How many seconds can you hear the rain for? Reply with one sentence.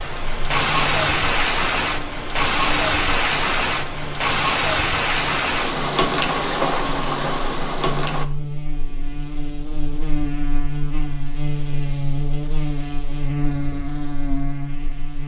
You can hear the rain for 8 seconds altogether.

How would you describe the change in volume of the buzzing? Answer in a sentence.
The loudness of the buzzing goes up.